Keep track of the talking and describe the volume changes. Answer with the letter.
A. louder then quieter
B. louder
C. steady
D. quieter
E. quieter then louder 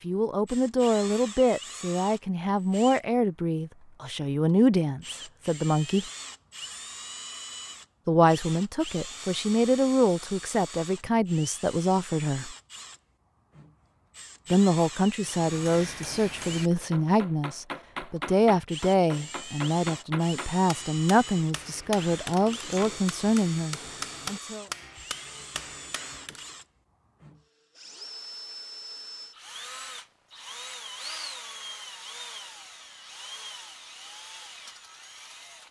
C.